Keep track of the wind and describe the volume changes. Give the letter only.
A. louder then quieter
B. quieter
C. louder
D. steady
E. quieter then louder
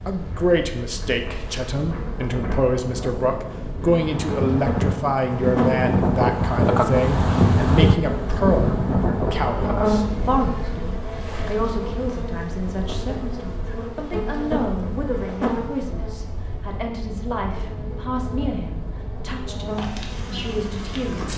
A.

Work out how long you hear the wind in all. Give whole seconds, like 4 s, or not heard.
21 s.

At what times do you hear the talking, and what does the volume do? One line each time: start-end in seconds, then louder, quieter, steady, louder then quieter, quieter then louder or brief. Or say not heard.
0.1-21.3 quieter.